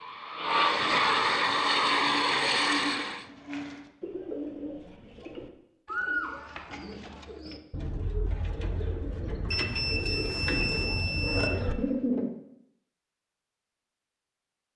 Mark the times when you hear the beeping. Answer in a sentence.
The beeping can be heard from 9.5 to 11.5 s.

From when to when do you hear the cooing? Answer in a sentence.
You can hear the cooing from 1.7 to 12.3 s.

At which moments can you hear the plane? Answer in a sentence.
The plane can be heard from 0.0 to 3.2 s.